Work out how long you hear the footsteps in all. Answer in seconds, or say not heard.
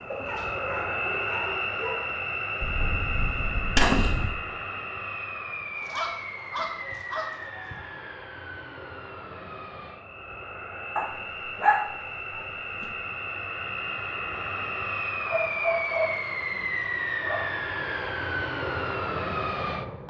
not heard.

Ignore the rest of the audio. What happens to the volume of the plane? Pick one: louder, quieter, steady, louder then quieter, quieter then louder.
quieter then louder.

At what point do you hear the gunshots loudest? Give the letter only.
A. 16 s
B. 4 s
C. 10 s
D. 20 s
B.